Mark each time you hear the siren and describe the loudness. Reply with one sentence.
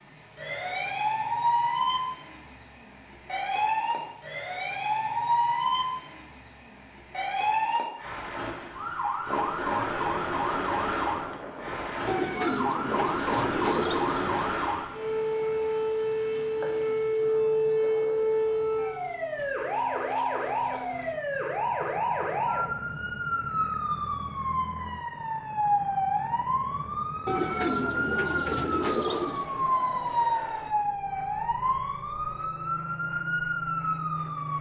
The siren can be heard from 0.0 to 34.5 s, at a steady volume.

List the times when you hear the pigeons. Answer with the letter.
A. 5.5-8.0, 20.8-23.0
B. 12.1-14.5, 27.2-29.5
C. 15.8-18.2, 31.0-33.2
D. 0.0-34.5
B.